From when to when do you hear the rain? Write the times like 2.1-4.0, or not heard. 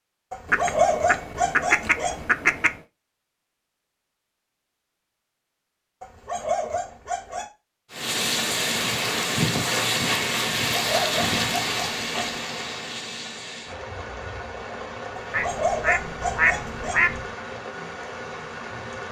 7.9-19.0.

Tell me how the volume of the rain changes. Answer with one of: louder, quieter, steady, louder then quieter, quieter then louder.
quieter.